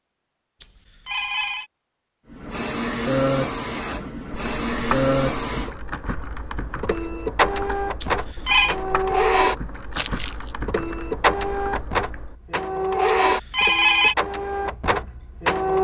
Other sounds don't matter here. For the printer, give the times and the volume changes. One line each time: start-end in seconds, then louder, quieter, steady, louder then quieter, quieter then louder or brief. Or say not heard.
2.3-15.7 steady.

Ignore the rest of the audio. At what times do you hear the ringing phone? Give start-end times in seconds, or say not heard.
0.6-1.6, 8.0-8.8, 13.1-14.2.